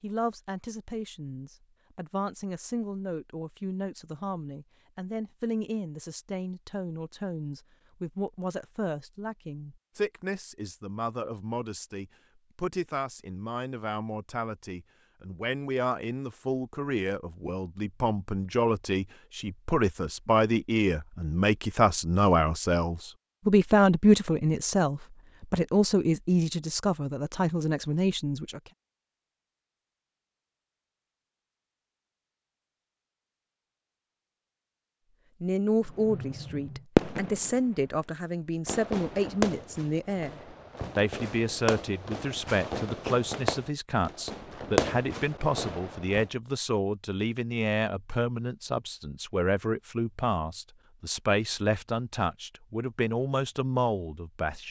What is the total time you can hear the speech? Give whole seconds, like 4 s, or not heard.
48 s.